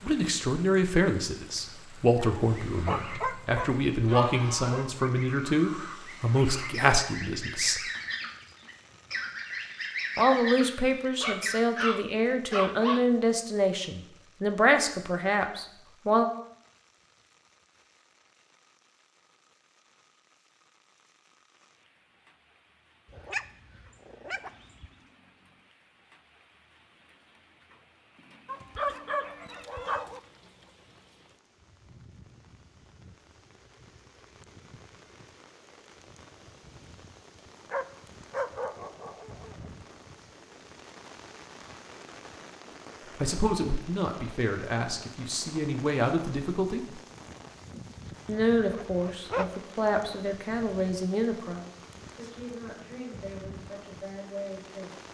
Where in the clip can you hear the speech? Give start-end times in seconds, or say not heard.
0.0-7.8, 10.2-16.2, 43.2-47.0, 48.2-55.0.